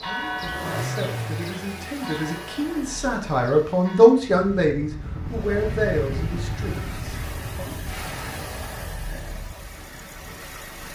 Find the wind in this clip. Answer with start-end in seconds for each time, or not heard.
4.1-10.9.